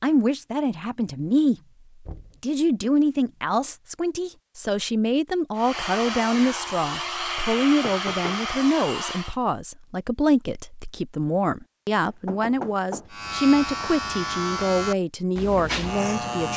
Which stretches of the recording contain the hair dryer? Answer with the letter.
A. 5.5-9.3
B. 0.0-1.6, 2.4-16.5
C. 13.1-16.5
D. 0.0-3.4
A.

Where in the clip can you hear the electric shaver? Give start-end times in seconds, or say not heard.
13.1-16.5.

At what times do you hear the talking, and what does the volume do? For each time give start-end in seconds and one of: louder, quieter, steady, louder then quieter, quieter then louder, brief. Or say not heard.
0.0-1.6 brief
2.4-16.5 steady.